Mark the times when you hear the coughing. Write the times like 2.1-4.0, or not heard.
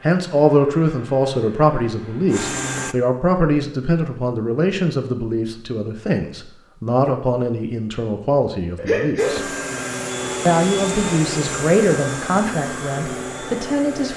8.8-9.3.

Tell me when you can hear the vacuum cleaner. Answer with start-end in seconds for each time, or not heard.
0.0-3.0, 9.2-14.1.